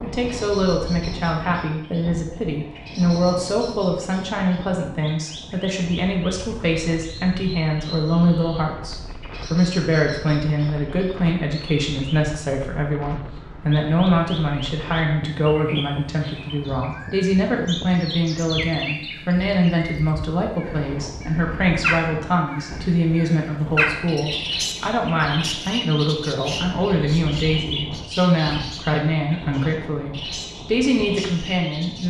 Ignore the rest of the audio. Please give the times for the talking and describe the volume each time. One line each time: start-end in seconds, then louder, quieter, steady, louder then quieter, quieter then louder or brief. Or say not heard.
0.0-32.0 steady.